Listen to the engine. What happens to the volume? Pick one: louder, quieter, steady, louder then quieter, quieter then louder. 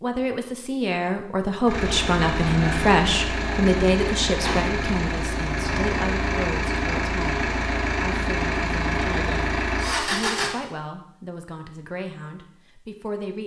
steady.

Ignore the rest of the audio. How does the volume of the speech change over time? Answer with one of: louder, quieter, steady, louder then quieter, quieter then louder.
quieter.